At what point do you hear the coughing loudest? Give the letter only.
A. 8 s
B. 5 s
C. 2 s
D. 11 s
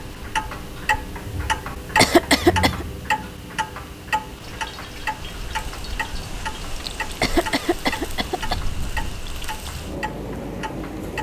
C.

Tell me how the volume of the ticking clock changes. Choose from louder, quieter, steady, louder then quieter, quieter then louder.
quieter.